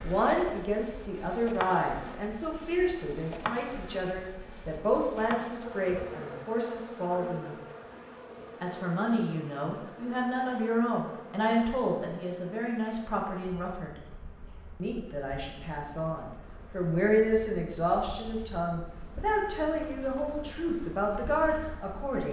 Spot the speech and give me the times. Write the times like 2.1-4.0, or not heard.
0.0-7.5, 8.6-14.1, 14.8-22.2.